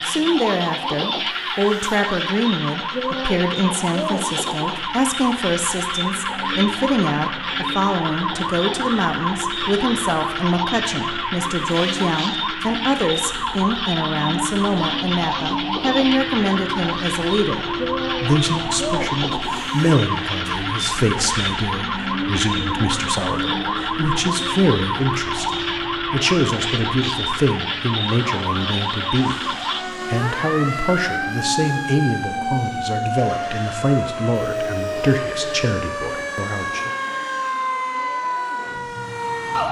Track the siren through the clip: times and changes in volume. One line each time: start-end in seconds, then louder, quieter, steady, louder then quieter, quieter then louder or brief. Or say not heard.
0.0-39.6 steady.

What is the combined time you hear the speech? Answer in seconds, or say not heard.
37 s.